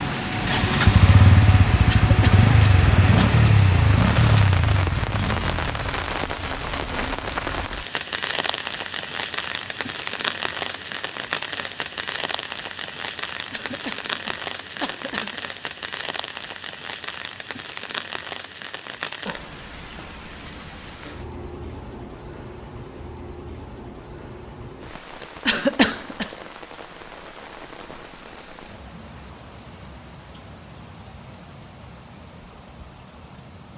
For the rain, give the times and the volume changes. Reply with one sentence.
The rain can be heard from 0.0 to 33.7 s, getting quieter.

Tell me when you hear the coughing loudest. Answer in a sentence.
The volume of the coughing peaks at 26 seconds.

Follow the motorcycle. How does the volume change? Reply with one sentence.
The loudness of the motorcycle goes down.